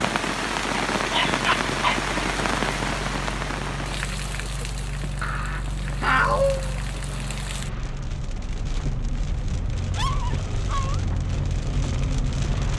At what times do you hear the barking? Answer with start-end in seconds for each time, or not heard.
0.8-2.0, 5.2-6.7, 9.9-11.1.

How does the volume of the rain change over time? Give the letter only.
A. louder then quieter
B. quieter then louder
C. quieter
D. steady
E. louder
B.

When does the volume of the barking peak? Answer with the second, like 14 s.
6 s.